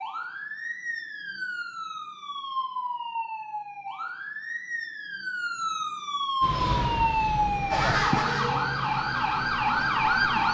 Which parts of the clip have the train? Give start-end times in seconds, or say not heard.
6.4-8.1.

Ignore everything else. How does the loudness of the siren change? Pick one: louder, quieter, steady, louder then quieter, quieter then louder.
louder.